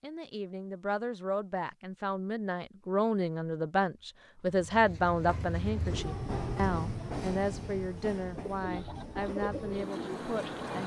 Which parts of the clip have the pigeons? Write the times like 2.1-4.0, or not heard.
8.4-10.7.